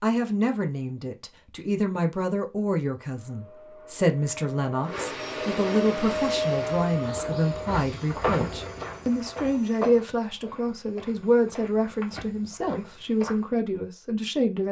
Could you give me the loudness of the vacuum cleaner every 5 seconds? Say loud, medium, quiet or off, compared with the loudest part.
medium, loud, off.